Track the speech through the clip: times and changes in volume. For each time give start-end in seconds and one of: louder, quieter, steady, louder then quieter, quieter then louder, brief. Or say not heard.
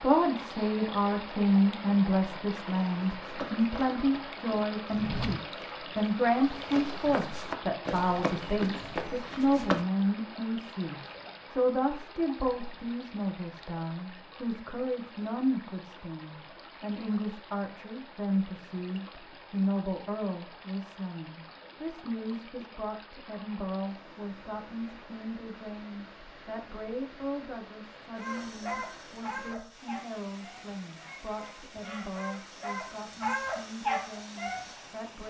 0.0-35.2 quieter.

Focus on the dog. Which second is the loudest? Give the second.
34 s.